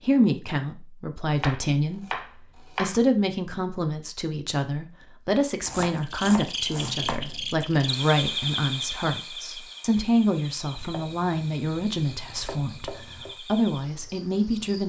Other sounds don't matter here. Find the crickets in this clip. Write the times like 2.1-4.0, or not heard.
6.0-14.8.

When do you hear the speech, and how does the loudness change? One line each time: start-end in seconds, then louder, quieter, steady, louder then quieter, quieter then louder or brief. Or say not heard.
0.1-2.1 brief
2.8-14.8 steady.